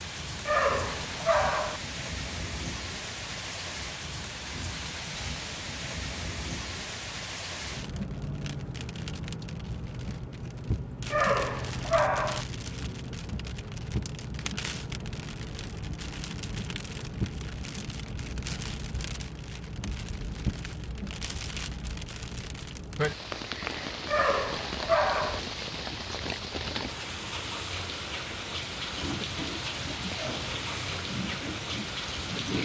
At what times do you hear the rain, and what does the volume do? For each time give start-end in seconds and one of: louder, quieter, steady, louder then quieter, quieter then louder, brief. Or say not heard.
0.0-32.6 steady.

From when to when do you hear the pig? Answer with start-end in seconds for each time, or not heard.
28.9-32.6.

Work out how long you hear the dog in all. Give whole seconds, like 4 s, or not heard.
4 s.